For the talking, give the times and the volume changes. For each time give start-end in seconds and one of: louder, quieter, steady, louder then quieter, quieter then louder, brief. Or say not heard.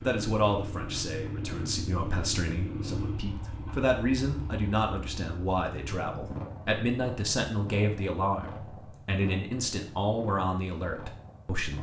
0.0-11.7 steady.